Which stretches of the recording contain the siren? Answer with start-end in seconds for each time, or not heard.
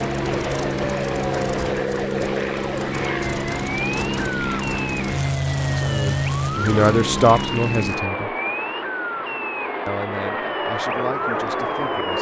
0.0-12.1.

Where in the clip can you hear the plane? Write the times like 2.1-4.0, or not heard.
0.0-12.1.